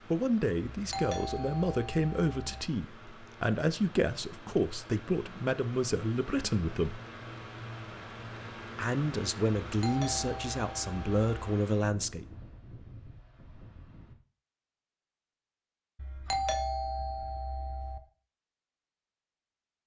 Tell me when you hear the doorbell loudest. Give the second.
16 s.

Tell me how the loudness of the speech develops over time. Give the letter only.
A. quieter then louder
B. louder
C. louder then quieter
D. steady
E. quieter
D.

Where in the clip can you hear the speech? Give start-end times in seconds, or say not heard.
0.1-7.0, 8.8-12.2.